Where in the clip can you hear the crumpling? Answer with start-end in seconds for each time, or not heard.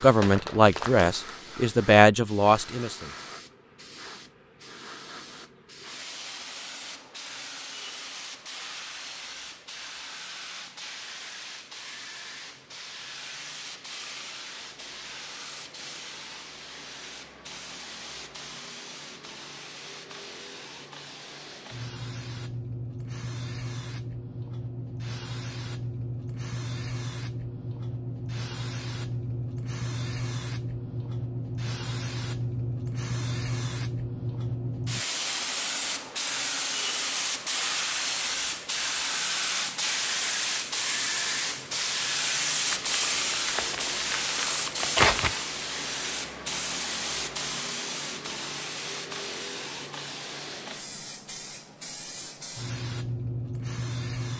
0.2-1.1, 42.7-45.4.